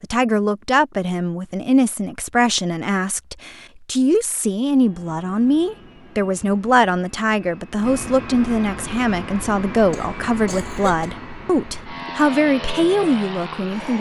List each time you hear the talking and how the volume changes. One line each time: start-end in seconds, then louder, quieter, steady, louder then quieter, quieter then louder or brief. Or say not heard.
0.0-13.9 steady.